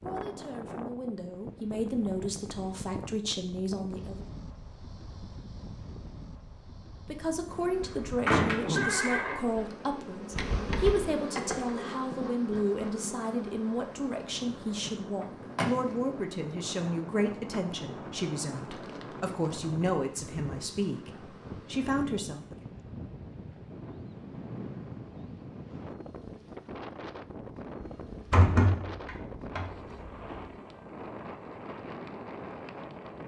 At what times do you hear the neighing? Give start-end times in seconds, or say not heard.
8.8-9.8.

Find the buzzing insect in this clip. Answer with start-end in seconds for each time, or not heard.
7.5-21.9.